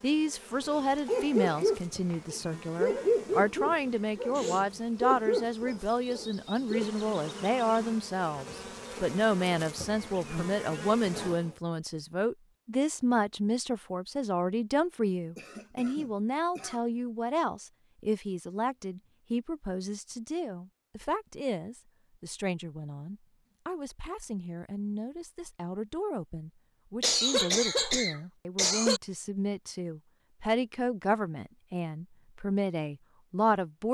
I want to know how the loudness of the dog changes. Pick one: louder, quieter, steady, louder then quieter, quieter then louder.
quieter.